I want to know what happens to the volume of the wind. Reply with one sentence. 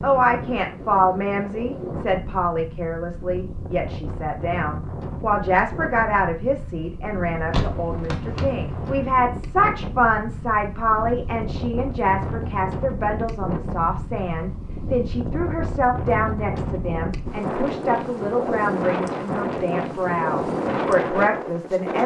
The volume of the wind goes up.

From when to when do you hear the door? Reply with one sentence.
You can hear the door from 7.5 to 8.9 s.